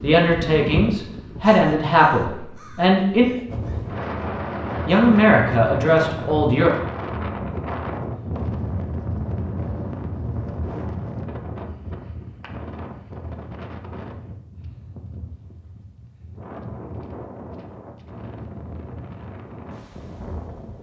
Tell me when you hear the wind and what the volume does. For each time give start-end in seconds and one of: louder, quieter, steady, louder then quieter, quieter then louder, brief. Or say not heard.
3.5-20.7 quieter.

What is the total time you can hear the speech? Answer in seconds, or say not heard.
5 s.